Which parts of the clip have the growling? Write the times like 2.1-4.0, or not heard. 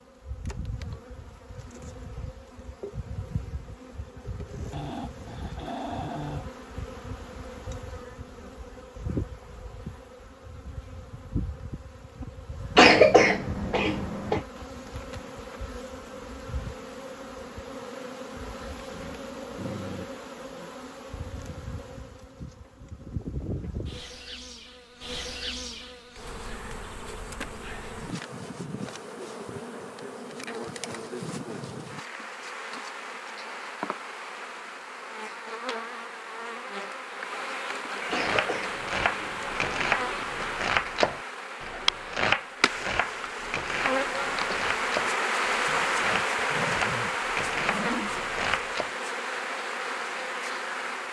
4.7-6.5, 18.9-20.1, 45.6-48.1.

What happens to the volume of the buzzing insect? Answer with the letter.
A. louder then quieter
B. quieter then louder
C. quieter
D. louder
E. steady
D.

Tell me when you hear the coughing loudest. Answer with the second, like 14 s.
13 s.